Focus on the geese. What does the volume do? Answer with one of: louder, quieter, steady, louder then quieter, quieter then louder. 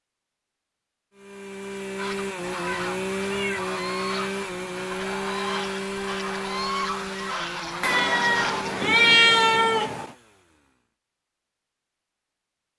louder.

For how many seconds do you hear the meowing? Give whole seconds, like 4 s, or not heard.
3 s.